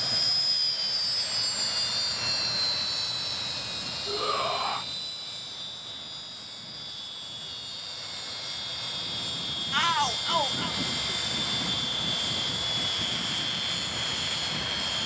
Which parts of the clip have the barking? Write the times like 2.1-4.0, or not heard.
not heard.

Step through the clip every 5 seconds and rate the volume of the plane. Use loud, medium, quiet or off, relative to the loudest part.
loud, medium, loud.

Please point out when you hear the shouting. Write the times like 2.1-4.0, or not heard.
4.0-4.8, 9.7-10.8.